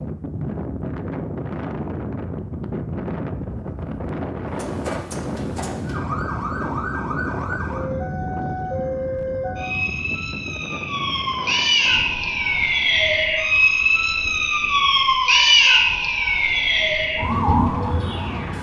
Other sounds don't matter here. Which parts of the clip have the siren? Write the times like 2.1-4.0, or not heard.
4.5-18.5.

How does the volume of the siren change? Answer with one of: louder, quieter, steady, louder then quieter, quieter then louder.
louder.